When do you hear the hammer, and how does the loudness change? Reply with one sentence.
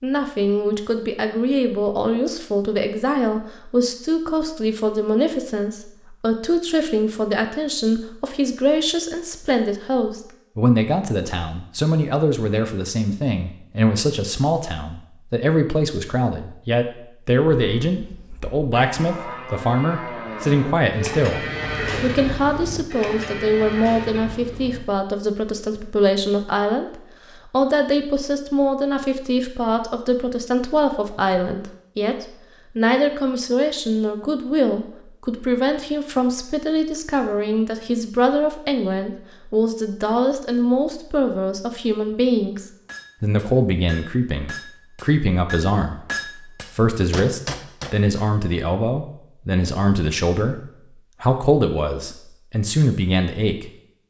The hammer can be heard from 42.9 to 48.2 s, getting louder.